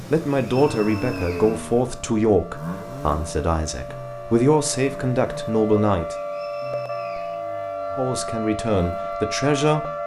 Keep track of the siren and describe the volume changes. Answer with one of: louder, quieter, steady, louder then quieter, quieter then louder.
louder.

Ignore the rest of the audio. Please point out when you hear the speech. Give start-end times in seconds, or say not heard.
0.1-6.2, 7.9-9.8.